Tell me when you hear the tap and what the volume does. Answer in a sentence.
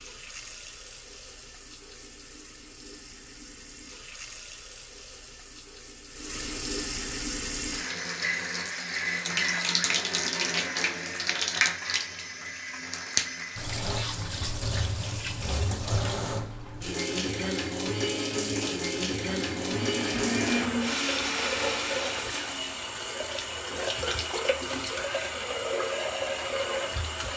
The tap can be heard from 0.0 to 27.3 s, getting louder.